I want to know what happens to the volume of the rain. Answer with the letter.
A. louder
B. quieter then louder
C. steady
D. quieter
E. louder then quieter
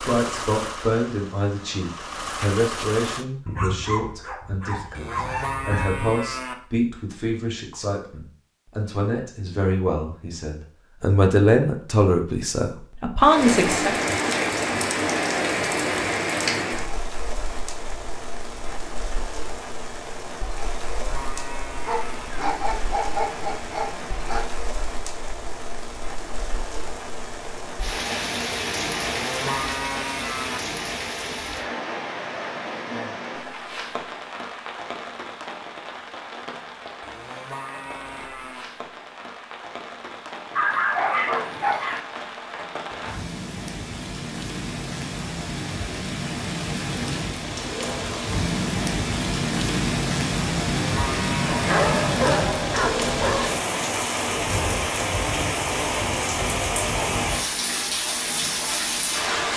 B.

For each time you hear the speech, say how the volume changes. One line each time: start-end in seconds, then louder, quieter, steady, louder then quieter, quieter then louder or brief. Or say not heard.
0.0-13.9 quieter then louder.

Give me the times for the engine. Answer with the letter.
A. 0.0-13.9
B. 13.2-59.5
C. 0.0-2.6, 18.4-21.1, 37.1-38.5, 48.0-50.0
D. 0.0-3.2
D.